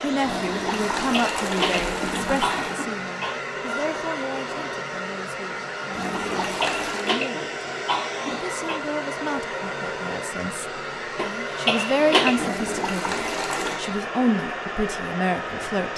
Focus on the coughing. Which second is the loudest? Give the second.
12 s.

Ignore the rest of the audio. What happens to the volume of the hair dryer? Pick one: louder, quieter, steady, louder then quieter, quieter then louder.
steady.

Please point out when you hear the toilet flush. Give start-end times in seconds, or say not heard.
0.2-2.8, 5.9-7.2, 12.3-13.8.